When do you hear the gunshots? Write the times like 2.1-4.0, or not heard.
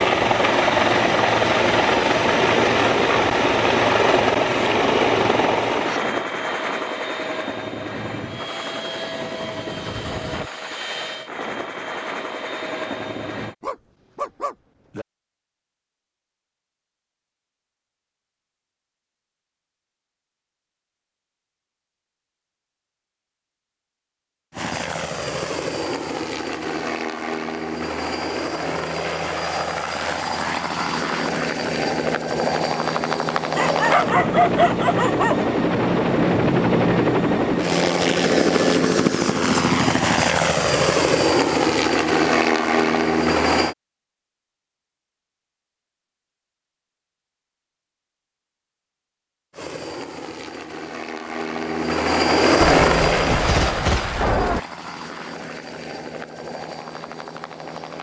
52.8-54.6.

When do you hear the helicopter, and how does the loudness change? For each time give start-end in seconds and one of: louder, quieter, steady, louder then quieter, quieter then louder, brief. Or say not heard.
0.0-13.6 quieter
24.5-43.8 louder
49.5-57.9 louder then quieter.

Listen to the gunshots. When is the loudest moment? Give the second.
54 s.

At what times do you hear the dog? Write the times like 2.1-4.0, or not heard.
13.6-15.1, 33.5-35.5.